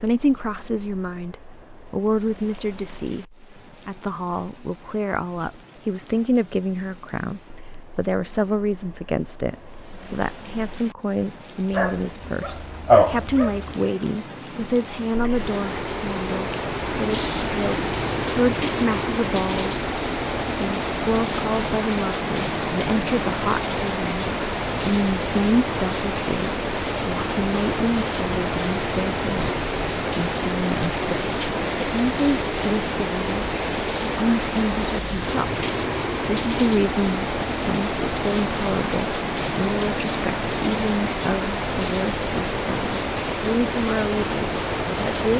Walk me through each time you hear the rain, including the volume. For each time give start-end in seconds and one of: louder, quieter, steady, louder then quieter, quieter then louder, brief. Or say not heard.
0.0-45.3 louder.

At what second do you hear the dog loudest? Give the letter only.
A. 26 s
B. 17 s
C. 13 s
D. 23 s
C.